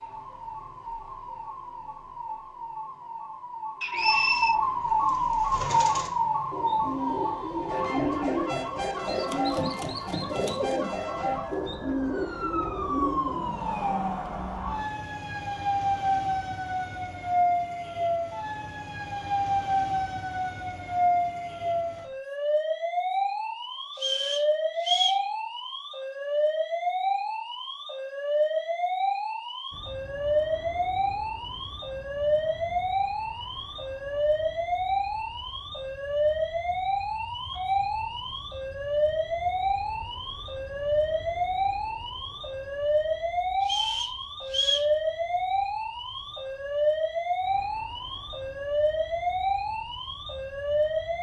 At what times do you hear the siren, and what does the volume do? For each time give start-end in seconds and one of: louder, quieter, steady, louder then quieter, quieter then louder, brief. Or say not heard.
0.0-51.1 steady.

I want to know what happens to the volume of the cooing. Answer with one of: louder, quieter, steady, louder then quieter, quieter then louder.
louder.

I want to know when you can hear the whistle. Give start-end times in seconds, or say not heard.
3.8-4.6, 23.9-25.2, 43.6-44.9.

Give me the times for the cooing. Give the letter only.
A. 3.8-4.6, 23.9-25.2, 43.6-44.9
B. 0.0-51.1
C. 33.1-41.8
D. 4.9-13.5
D.